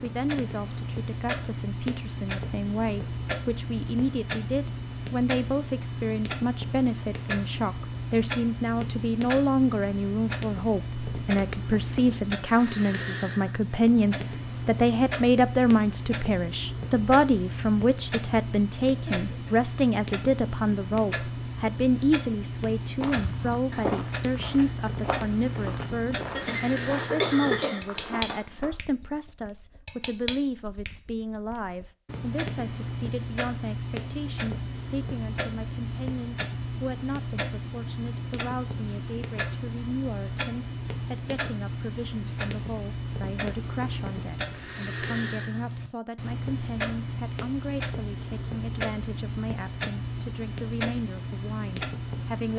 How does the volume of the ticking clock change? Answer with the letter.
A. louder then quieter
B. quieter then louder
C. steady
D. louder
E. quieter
C.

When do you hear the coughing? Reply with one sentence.
You can hear the coughing from 19.1 to 19.6 s and from 26.3 to 28.4 s.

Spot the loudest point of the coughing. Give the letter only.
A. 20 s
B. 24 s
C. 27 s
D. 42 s
C.